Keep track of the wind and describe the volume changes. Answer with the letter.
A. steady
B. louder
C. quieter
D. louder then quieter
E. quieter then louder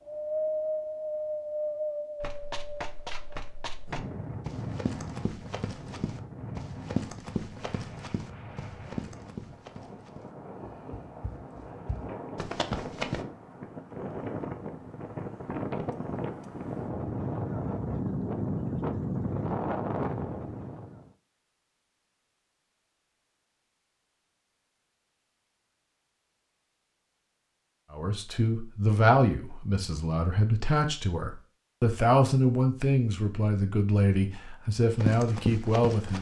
E.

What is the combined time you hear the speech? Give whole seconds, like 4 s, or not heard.
8 s.